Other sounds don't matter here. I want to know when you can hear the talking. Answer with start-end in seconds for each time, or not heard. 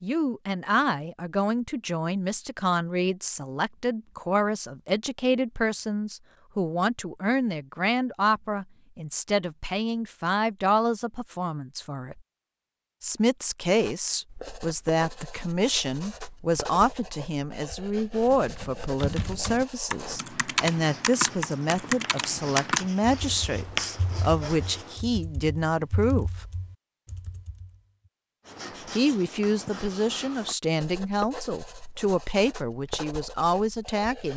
0.0-12.2, 13.0-26.4, 28.9-34.3.